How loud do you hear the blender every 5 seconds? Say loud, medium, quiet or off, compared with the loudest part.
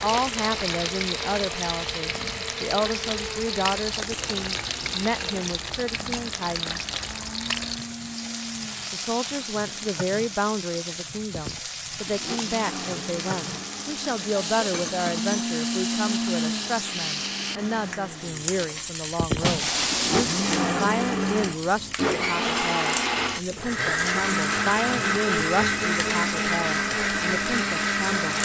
medium, quiet, quiet, medium, loud, loud.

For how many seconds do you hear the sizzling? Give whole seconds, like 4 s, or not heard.
28 s.